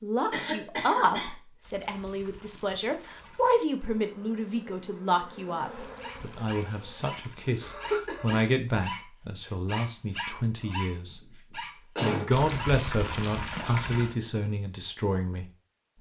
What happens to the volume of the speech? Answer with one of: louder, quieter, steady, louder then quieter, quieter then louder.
steady.